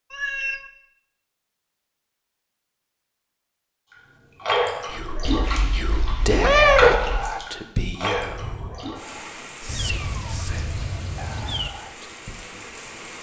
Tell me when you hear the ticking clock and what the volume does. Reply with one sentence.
You can't hear the ticking clock here.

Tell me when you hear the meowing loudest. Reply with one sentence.
The volume of the meowing peaks at 7 seconds.